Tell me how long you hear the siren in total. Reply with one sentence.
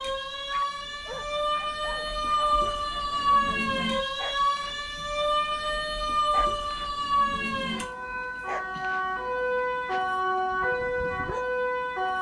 The siren can be heard for 12 seconds in total.